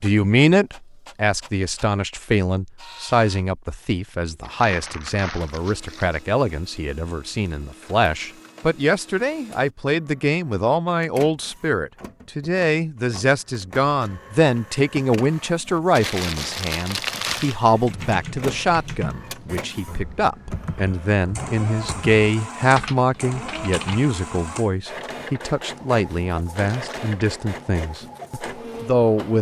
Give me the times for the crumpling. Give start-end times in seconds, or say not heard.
4.4-6.2, 15.9-17.6, 26.5-27.1.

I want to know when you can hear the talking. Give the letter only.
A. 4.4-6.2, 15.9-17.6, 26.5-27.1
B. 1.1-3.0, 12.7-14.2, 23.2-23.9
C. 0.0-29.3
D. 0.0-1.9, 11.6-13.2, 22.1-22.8
C.